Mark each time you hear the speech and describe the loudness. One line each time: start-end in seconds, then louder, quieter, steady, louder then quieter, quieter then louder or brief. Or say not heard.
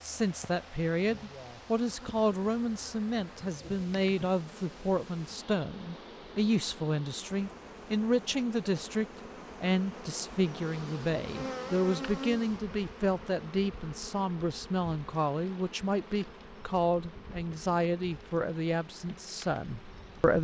0.0-20.3 steady.